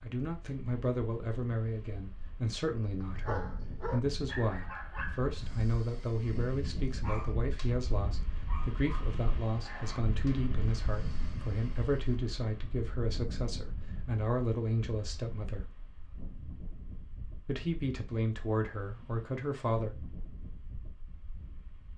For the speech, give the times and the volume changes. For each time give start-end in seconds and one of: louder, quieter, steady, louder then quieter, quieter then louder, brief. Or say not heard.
0.0-15.8 steady
17.4-19.9 brief.